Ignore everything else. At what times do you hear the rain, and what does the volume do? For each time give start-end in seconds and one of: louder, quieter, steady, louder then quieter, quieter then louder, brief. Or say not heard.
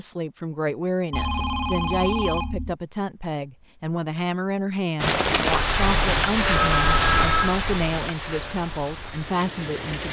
5.0-10.0 quieter.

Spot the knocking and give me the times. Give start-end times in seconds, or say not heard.
not heard.